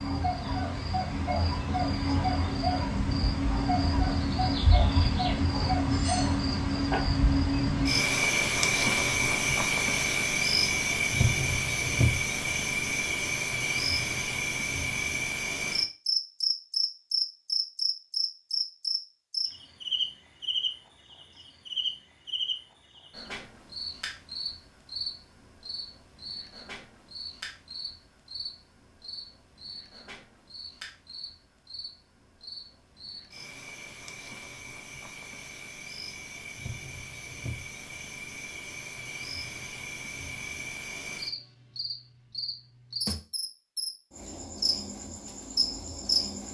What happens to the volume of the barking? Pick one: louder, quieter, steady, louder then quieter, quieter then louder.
steady.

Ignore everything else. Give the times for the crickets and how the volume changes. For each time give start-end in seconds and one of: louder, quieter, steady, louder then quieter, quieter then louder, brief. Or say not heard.
0.0-46.4 quieter then louder.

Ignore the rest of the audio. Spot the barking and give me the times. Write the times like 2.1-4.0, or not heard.
0.0-7.0.